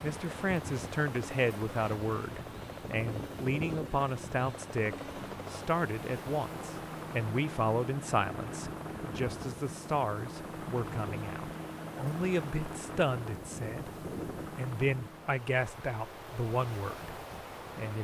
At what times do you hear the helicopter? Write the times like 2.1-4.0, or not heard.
0.0-15.3.